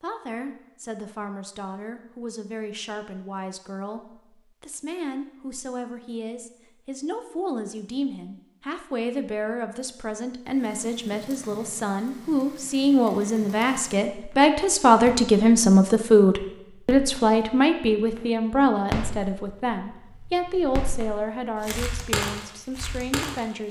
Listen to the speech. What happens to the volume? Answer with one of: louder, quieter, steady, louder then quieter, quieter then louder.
louder then quieter.